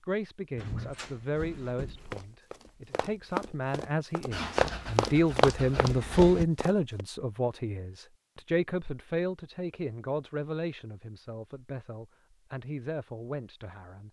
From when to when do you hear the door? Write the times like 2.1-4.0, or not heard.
0.6-2.2.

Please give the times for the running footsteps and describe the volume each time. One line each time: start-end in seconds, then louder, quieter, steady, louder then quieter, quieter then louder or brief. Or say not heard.
2.1-7.0 louder then quieter.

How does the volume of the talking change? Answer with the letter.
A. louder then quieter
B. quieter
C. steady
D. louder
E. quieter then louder
A.